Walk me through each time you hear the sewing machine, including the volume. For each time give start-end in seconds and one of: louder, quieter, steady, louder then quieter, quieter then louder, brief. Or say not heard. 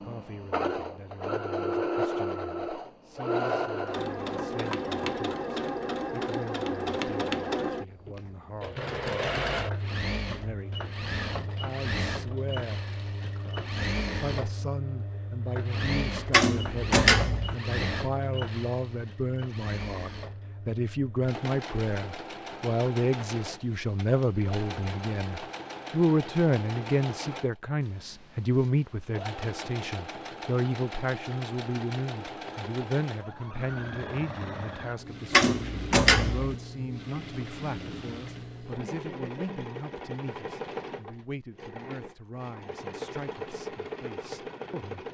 0.0-45.0 quieter.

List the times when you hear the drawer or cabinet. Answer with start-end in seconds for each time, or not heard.
16.3-17.6, 35.3-36.5.